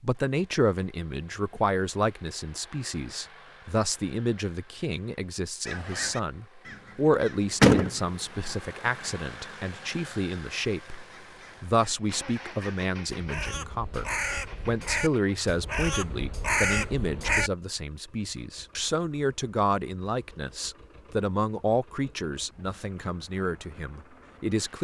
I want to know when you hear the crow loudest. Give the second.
8 s.